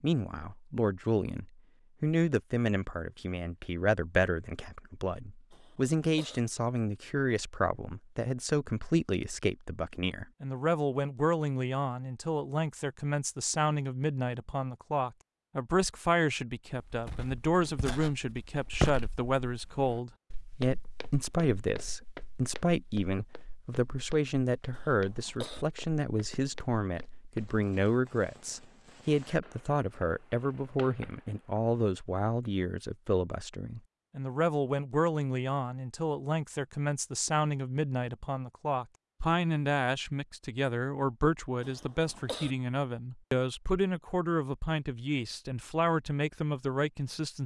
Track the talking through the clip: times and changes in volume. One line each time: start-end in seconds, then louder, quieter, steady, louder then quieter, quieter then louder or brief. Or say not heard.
0.0-47.4 steady.